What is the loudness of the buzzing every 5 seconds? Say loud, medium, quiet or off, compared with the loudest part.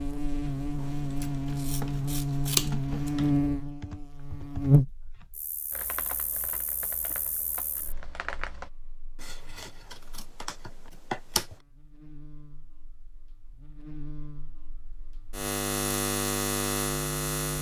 loud, quiet, quiet, loud.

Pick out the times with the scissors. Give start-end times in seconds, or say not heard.
0.8-3.3, 9.2-11.6.